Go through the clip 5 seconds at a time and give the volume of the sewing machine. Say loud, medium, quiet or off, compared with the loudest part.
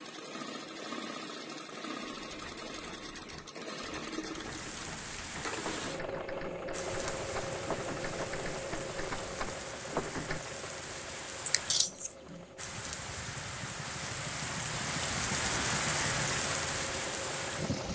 loud, loud, medium, loud.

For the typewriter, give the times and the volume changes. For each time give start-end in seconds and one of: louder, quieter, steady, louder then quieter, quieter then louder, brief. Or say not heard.
2.2-10.4 louder.